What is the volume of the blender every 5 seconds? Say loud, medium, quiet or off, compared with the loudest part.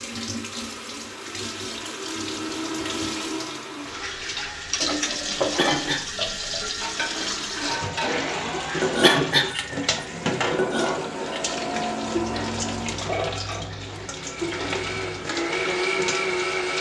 medium, medium, medium, loud.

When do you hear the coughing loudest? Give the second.
9 s.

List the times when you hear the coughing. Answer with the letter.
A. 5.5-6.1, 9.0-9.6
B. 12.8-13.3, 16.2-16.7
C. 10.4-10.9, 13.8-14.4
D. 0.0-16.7
A.